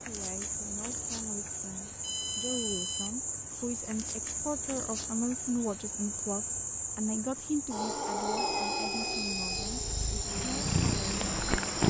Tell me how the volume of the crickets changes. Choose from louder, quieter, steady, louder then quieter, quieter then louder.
steady.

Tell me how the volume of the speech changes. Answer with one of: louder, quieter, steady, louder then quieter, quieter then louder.
louder then quieter.